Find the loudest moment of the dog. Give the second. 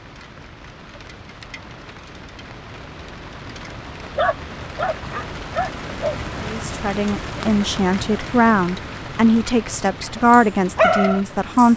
11 s.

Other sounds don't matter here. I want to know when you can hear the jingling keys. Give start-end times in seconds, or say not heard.
not heard.